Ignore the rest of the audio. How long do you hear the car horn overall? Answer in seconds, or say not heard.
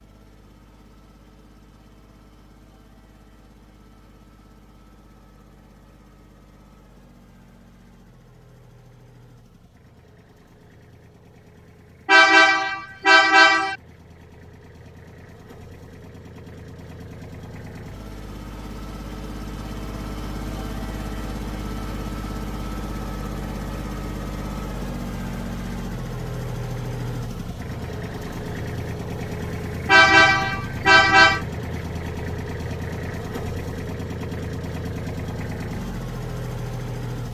3 s.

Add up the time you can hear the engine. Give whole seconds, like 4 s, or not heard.
37 s.